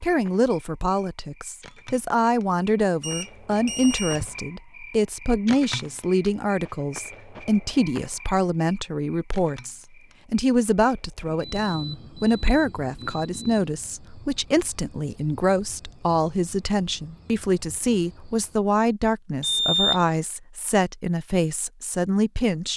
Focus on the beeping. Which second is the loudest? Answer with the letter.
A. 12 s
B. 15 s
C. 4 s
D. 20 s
D.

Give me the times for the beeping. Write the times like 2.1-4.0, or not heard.
3.0-4.4, 11.2-13.7, 19.4-20.1.